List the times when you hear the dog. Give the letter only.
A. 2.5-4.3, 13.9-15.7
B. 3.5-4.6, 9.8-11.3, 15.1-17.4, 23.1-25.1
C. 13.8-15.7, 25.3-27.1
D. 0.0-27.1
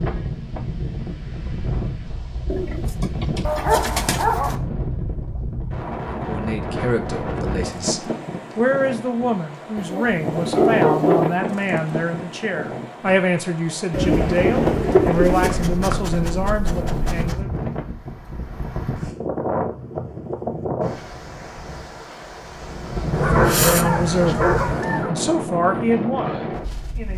B.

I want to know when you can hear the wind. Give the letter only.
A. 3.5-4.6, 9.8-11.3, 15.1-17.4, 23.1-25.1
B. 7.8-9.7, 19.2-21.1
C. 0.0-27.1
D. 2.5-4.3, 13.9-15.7
C.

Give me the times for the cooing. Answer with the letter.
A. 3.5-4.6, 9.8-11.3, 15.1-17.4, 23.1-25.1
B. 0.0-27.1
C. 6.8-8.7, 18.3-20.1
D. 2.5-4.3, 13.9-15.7
D.